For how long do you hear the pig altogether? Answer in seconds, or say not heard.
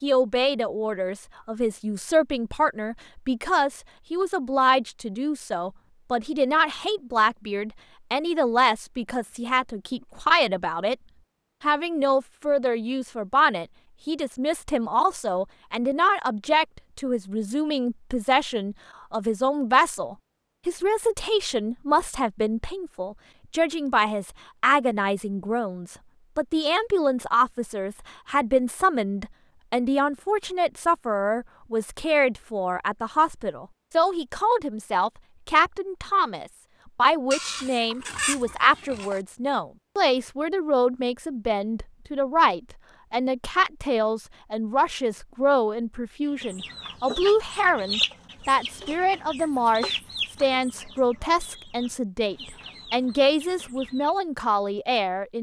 2 s.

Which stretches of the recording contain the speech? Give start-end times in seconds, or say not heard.
0.0-10.9, 11.6-55.3.